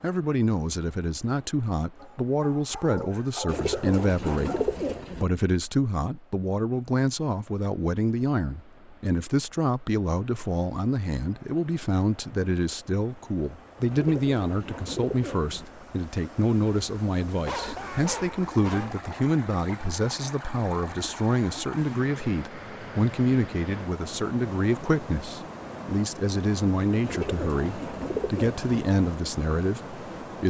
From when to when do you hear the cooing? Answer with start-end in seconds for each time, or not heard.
3.5-5.2, 13.9-15.7, 27.0-28.6.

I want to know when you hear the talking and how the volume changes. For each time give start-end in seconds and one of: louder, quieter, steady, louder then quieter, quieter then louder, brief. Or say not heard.
0.0-30.4 steady.